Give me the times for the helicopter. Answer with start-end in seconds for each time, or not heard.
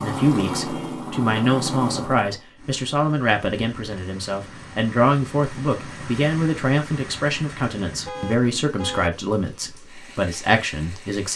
0.0-2.4.